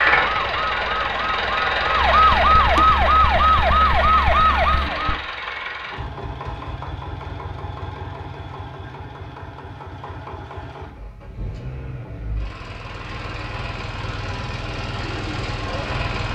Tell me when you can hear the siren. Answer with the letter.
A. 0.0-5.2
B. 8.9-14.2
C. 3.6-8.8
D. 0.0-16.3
A.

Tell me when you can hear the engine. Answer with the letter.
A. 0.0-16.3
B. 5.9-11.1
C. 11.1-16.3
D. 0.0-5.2
A.